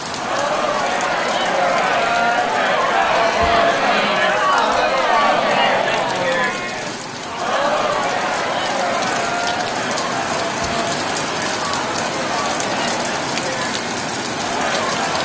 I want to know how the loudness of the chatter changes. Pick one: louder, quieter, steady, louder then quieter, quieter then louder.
quieter.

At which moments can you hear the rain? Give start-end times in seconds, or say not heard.
0.0-15.2.